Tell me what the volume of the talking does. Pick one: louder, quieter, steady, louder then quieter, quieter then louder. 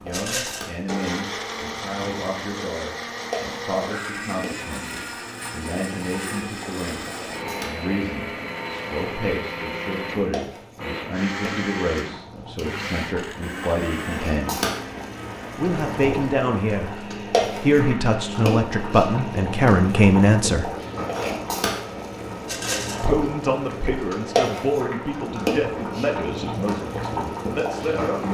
louder then quieter.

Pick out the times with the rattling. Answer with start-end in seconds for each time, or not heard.
0.1-0.7, 22.4-23.1.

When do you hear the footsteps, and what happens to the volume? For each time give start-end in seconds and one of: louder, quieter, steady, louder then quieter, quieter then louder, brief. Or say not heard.
not heard.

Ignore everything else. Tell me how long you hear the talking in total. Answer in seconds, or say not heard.
25 s.